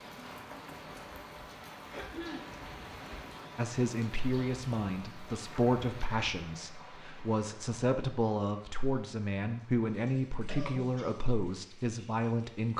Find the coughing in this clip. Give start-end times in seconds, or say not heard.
1.9-2.5, 10.4-11.2.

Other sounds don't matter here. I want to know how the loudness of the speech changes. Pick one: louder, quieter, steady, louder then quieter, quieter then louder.
steady.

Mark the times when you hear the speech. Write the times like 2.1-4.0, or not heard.
3.5-12.7.